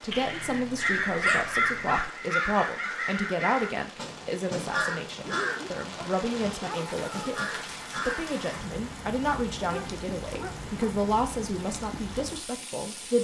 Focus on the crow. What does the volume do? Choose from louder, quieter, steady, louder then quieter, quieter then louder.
quieter.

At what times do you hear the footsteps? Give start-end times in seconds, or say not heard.
not heard.